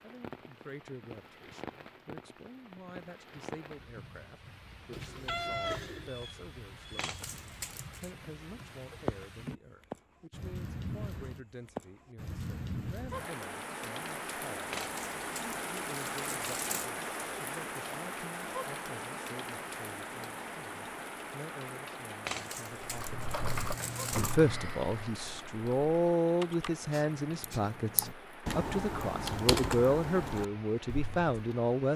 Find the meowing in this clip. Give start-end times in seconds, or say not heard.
4.9-6.1, 23.1-24.4.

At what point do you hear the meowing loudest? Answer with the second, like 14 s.
6 s.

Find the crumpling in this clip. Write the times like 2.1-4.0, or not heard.
7.0-8.1, 14.7-16.9, 22.2-24.4.